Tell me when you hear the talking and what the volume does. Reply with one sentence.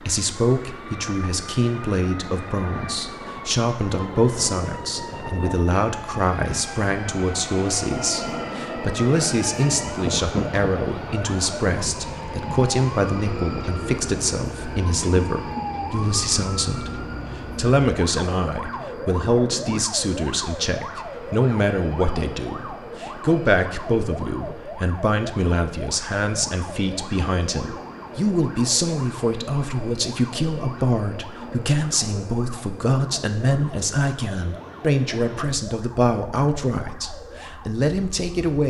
The talking can be heard from 0.1 to 38.6 s, at a steady volume.